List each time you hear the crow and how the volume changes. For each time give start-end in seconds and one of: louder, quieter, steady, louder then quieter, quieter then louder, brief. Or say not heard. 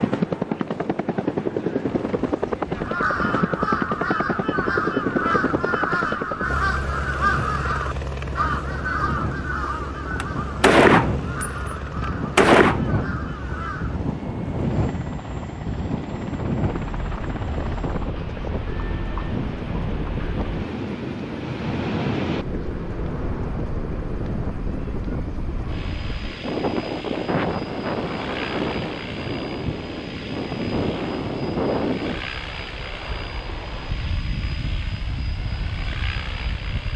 2.8-14.0 quieter.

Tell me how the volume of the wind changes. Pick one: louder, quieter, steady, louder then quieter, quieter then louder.
louder.